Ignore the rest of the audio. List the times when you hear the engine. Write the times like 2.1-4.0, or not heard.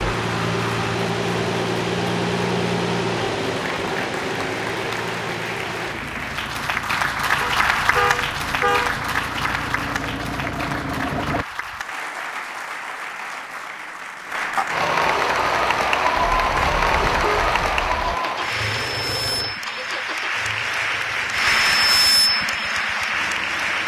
0.0-11.4, 15.5-23.8.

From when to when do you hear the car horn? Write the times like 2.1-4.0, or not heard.
7.4-9.0, 16.1-18.1.